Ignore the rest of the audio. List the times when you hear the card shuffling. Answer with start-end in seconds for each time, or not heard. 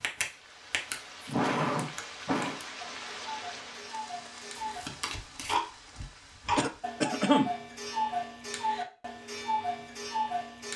4.5-5.6.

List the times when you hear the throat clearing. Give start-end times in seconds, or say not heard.
1.1-2.6, 6.5-7.5.